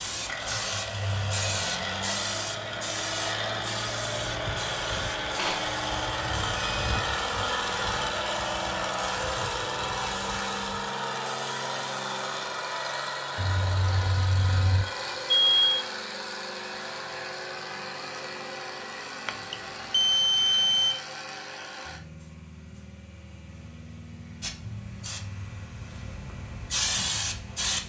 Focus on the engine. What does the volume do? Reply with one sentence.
The volume of the engine goes down.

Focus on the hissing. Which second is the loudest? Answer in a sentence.
The loudest moment of the hissing is at 27 seconds.